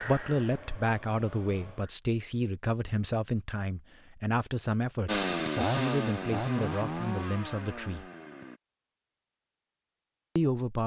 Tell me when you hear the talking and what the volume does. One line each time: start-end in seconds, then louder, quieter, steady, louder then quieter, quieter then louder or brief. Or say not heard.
0.1-8.1 steady
10.3-10.8 brief.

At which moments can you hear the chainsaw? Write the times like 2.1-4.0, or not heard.
5.0-8.6.